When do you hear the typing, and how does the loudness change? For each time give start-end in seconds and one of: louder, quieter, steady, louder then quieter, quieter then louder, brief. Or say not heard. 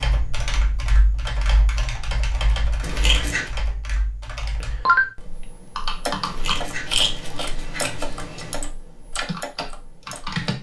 0.0-10.5 louder then quieter.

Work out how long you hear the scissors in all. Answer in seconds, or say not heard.
3 s.